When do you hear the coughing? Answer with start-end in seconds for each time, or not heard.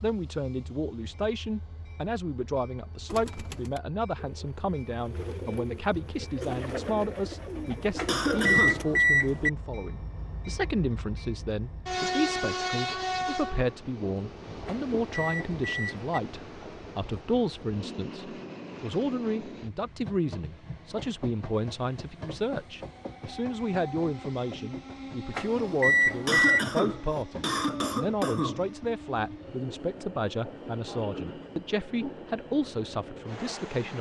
8.1-8.8, 26.2-28.7.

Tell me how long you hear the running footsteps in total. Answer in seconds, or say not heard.
not heard.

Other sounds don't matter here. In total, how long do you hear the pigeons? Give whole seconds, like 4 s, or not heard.
6 s.